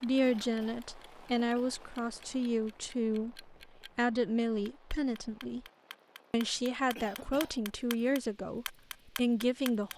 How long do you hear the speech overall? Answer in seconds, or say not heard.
9 s.